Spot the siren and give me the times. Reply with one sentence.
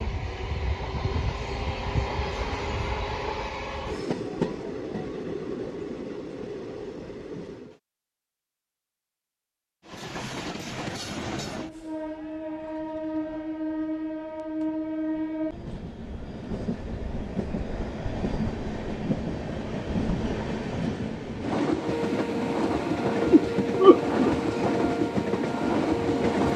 You can hear the siren from 21.8 to 26.5 s.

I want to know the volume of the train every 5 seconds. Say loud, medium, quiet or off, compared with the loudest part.
medium, medium, medium, medium, loud, loud.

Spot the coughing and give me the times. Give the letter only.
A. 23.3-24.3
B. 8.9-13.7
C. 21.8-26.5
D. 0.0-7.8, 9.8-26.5
A.